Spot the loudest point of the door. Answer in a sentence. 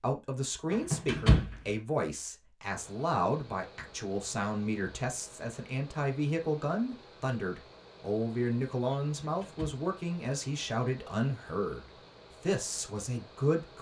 The volume of the door peaks at 1 second.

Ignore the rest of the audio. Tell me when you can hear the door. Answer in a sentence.
You can hear the door from 0.7 to 1.6 s and from 9.2 to 9.8 s.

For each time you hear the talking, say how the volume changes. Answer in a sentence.
The talking can be heard from 0.0 to 13.7 s, at a steady volume.